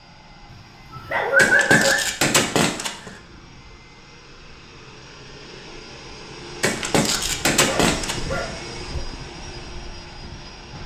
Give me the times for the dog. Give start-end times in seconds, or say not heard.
0.5-2.1, 7.7-9.2.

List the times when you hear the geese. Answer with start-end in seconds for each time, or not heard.
1.4-3.1, 6.6-8.3.